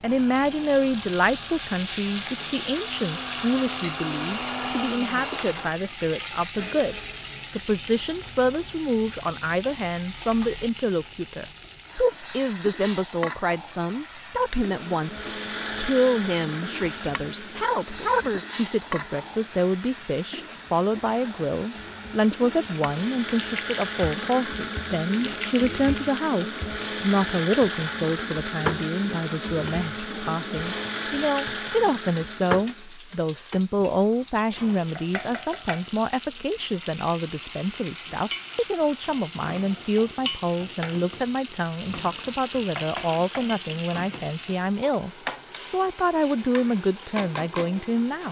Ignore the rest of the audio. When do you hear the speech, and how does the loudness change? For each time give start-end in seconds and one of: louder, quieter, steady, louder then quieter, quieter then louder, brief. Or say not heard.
0.0-48.2 steady.